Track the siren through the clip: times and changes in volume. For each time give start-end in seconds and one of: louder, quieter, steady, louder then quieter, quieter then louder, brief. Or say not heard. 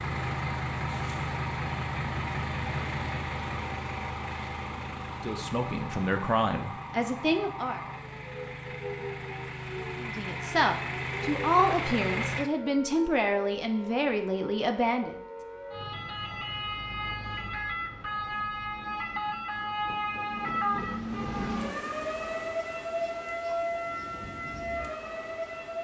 0.1-25.7 louder.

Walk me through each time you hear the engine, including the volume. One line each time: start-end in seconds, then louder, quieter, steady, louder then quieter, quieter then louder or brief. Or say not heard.
0.0-12.5 quieter then louder.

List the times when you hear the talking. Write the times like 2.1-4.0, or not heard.
5.2-7.8, 10.0-15.2.